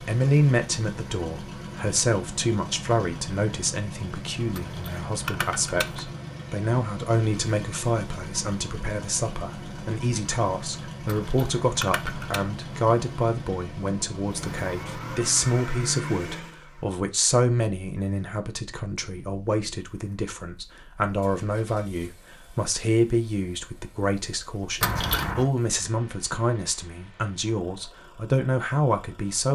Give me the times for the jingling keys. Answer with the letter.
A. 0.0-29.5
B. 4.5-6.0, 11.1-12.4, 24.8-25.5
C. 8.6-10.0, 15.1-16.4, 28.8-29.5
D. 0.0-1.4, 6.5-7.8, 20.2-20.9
B.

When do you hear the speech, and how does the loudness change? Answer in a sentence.
The speech can be heard from 0.0 to 29.5 s, at a steady volume.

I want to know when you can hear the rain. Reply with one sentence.
The rain can't be heard in this clip.